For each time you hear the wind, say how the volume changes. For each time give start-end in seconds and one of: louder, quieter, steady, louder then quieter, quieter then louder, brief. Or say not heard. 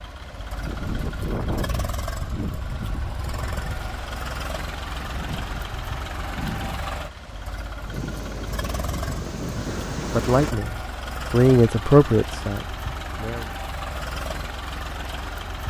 0.0-10.6 quieter then louder.